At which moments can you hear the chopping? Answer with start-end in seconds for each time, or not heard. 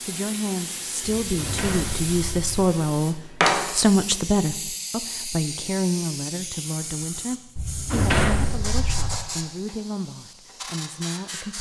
not heard.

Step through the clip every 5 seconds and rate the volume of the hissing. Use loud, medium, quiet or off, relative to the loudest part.
loud, medium, medium.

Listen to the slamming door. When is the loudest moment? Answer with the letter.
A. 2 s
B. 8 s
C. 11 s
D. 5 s
B.